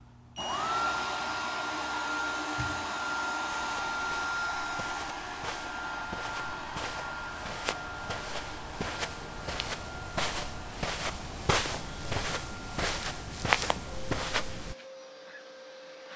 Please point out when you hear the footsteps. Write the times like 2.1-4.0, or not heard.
3.5-14.8.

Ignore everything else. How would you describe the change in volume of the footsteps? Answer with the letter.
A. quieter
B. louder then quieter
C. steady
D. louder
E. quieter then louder
D.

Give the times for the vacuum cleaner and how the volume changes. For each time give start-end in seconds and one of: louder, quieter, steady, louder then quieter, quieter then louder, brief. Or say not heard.
0.0-16.1 quieter.